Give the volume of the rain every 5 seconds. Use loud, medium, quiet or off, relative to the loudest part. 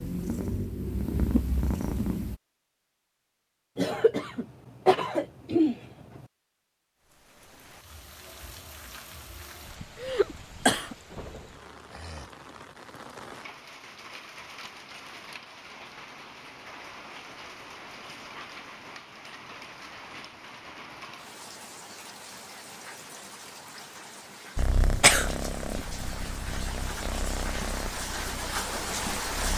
off, quiet, medium, medium, medium, loud.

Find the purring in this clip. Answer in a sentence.
You can hear the purring from 0.0 to 2.4 s and from 24.6 to 29.5 s.